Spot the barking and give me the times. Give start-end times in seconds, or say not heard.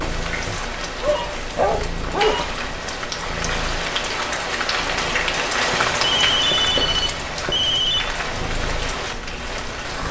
0.0-2.4.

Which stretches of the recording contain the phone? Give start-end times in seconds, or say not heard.
1.1-2.5, 5.7-8.1.